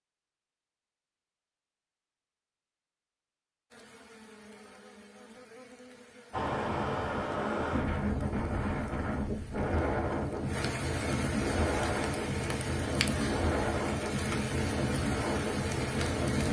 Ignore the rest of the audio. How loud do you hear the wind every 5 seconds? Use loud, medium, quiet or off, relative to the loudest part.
off, loud, loud, loud.